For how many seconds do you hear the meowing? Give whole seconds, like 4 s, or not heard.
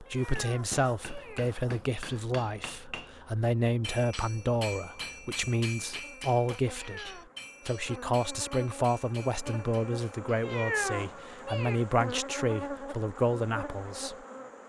4 s.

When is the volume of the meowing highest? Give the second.
11 s.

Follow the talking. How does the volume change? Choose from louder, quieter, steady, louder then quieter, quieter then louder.
steady.